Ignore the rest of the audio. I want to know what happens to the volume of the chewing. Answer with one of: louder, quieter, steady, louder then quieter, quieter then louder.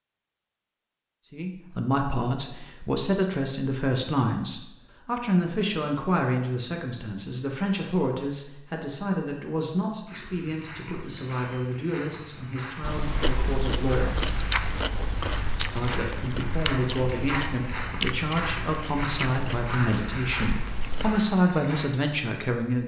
quieter.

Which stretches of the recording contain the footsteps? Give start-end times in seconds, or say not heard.
10.1-21.9.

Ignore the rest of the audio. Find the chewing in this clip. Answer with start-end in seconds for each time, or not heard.
12.8-21.2.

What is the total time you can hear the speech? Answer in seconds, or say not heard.
20 s.